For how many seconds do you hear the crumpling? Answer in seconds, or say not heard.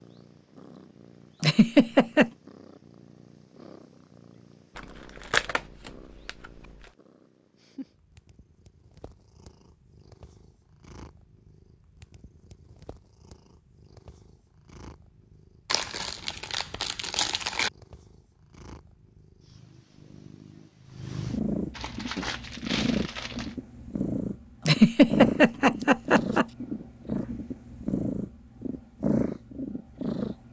6 s.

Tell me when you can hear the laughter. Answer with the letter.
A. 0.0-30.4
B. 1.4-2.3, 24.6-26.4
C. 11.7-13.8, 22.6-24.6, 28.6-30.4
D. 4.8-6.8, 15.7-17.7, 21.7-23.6
B.